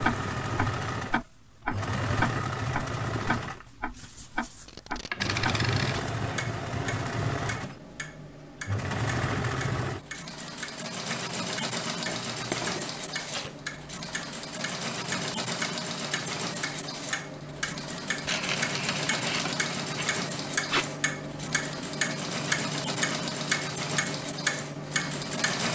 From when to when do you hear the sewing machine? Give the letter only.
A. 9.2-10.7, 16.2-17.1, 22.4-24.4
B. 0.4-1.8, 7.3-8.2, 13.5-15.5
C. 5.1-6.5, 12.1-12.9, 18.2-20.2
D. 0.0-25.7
D.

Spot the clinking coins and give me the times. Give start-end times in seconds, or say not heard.
5.1-6.5, 12.1-12.9, 18.2-20.2.